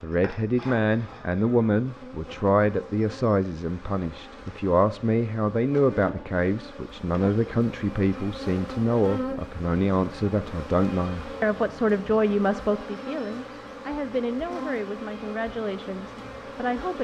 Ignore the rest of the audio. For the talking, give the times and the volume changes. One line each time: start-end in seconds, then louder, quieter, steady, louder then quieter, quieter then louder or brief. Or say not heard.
0.0-16.9 quieter.